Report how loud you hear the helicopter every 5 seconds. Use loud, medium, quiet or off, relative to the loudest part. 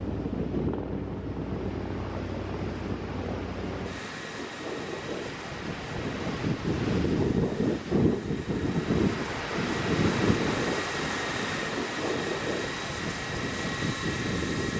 loud, medium, loud.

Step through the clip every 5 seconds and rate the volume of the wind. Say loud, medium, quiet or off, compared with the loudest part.
medium, loud, loud.